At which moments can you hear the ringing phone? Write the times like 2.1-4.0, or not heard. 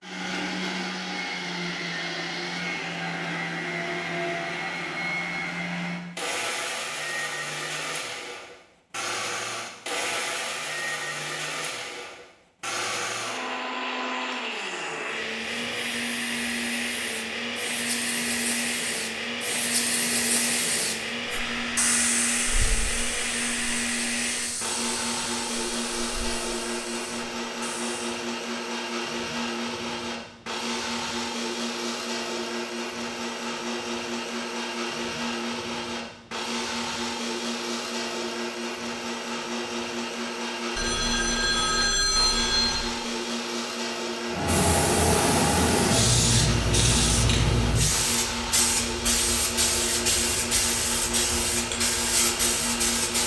40.8-42.8.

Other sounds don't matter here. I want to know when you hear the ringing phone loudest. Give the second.
42 s.